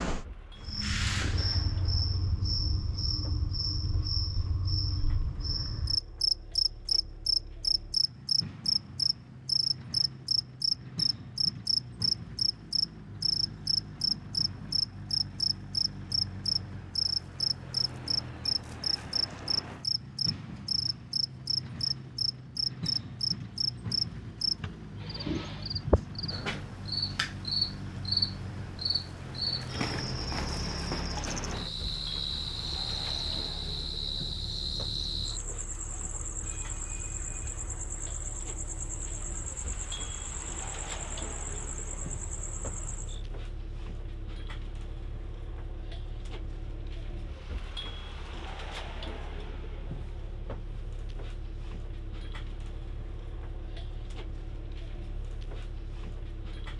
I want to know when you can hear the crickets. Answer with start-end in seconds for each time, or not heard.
0.0-43.2.